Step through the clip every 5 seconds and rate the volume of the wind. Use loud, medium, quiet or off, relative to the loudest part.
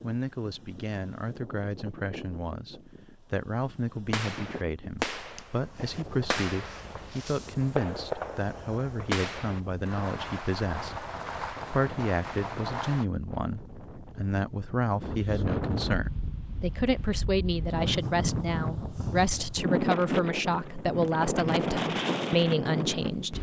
quiet, quiet, quiet, loud, loud.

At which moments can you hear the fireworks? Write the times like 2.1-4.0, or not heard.
4.1-13.1.